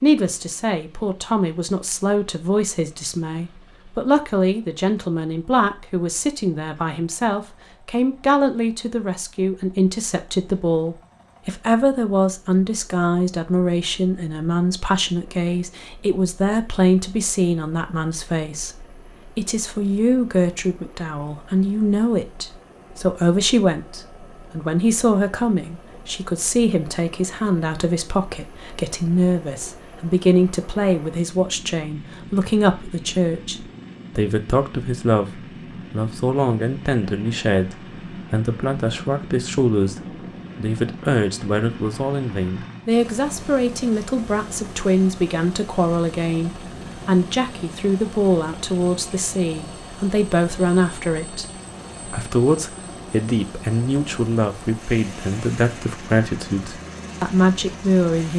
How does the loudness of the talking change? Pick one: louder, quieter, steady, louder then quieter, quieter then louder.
steady.